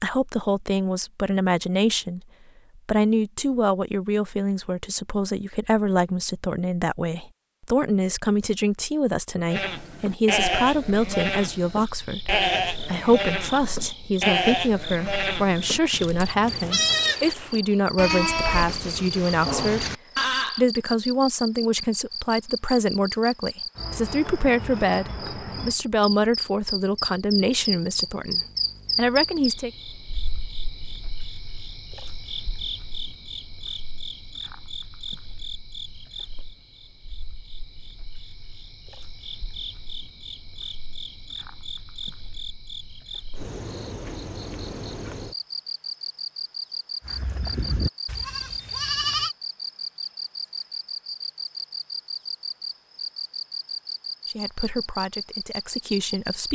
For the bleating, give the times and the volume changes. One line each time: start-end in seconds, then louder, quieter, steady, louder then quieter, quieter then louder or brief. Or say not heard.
9.5-20.6 steady
47.0-49.3 brief.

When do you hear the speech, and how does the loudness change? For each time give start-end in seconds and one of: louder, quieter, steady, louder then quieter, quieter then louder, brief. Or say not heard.
0.0-19.9 steady
20.6-29.7 steady
54.2-56.4 brief.